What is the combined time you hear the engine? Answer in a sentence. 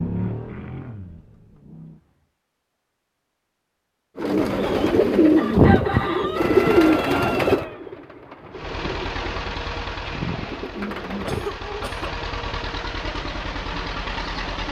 The engine can be heard for 8 seconds in total.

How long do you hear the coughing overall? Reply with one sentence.
The coughing can be heard for 2 seconds in total.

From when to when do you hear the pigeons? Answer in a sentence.
The pigeons can be heard from 4.2 to 11.6 s.